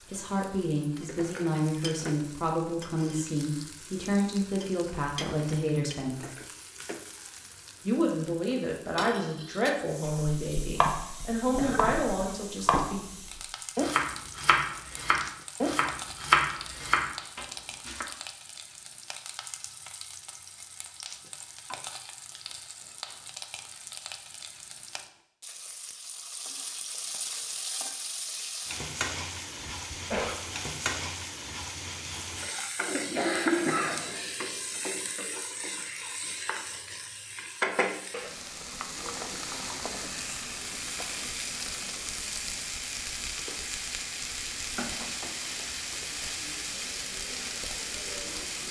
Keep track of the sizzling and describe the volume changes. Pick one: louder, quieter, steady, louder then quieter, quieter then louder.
louder.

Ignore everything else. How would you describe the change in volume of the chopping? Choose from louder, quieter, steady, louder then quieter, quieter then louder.
louder.